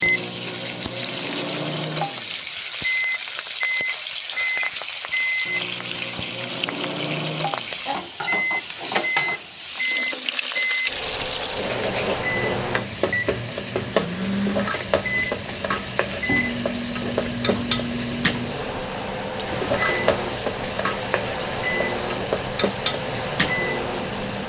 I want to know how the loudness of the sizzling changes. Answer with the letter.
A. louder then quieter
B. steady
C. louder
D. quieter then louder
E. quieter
B.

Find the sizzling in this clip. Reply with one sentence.
The sizzling can be heard from 0.0 to 24.4 s.